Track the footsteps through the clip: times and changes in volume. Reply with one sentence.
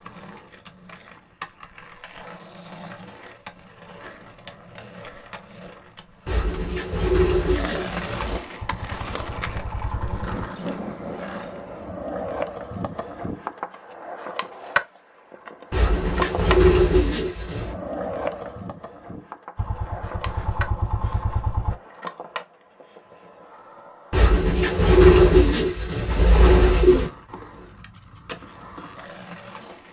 The footsteps can't be heard in this clip.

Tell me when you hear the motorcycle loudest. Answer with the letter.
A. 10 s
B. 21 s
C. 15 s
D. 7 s
B.